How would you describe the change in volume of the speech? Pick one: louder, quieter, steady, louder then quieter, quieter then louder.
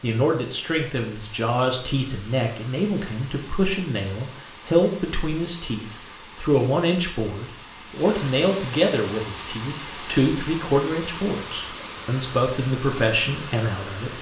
steady.